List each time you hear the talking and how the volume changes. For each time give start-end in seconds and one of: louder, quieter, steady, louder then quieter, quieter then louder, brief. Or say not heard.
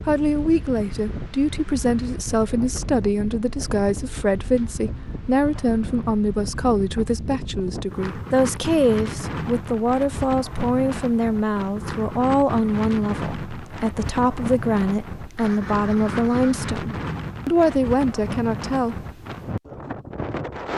0.1-19.0 steady.